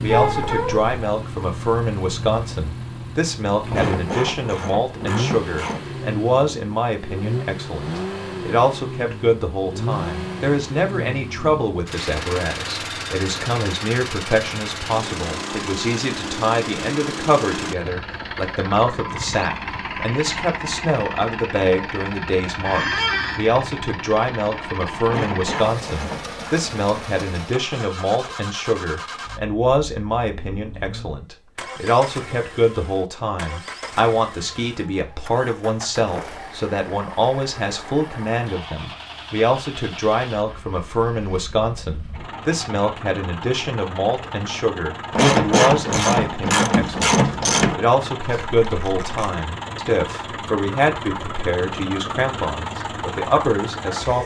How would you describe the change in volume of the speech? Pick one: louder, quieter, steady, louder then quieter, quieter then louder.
steady.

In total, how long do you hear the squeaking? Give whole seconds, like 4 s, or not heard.
3 s.